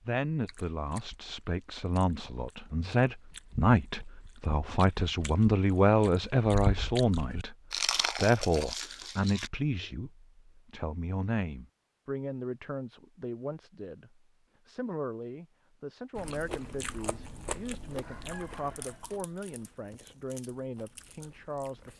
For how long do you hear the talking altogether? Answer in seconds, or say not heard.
22 s.